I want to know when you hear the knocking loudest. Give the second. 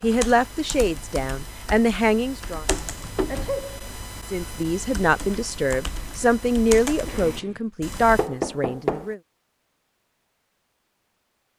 9 s.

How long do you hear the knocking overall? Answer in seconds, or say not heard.
2 s.